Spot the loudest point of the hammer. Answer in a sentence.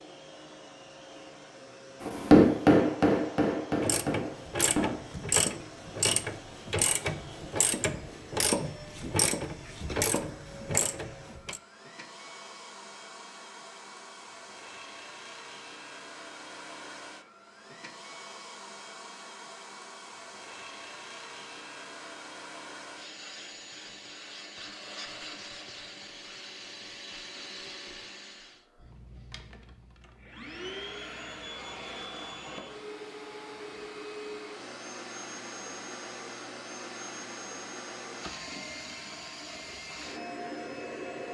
The volume of the hammer peaks at 2 seconds.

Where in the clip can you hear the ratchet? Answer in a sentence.
The ratchet can be heard from 3.8 to 11.6 s.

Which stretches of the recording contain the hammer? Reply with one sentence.
You can hear the hammer from 2.0 to 5.2 s.